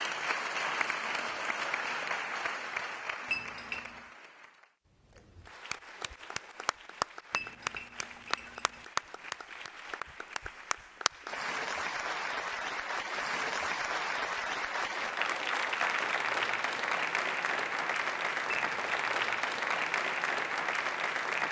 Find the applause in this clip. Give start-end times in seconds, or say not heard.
0.0-21.4.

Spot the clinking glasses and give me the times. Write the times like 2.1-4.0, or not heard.
3.3-4.0, 7.3-8.8, 18.5-19.0.